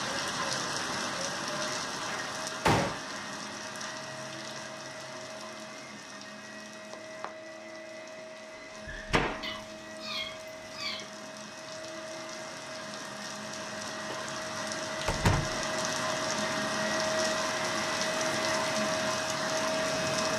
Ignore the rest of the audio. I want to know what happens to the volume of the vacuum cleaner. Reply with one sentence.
The volume of the vacuum cleaner goes up.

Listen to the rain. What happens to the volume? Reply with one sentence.
The loudness of the rain goes down, then up.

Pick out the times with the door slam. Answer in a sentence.
The door slam can be heard from 1.4 to 3.0 s, from 8.8 to 9.6 s and from 15.1 to 15.7 s.